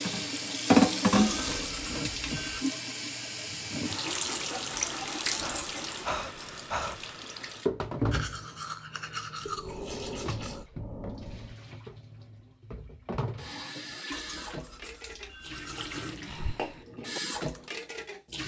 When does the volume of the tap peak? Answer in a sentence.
The loudest moment of the tap is at 1 second.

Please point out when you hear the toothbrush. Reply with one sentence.
You can hear the toothbrush from 1.1 to 2.6 s, from 8.1 to 10.7 s and from 14.1 to 16.1 s.